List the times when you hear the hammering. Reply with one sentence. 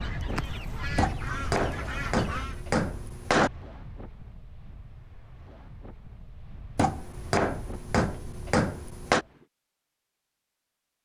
You can hear the hammering from 0.9 to 3.5 s and from 6.8 to 9.2 s.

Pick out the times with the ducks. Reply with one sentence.
You can hear the ducks from 0.0 to 2.6 s.